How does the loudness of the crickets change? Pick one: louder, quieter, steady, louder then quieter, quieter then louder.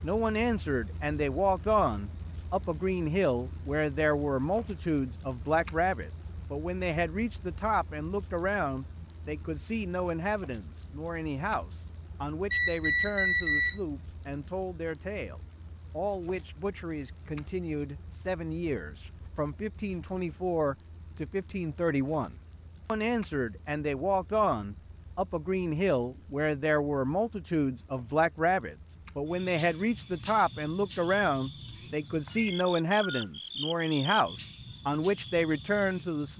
quieter.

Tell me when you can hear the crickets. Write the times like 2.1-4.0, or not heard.
0.0-36.3.